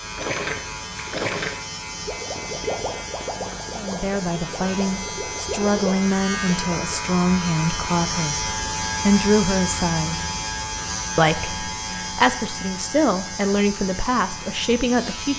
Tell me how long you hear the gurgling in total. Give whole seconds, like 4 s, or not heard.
7 s.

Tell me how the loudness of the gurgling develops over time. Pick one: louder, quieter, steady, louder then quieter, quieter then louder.
quieter then louder.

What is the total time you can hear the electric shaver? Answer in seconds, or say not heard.
15 s.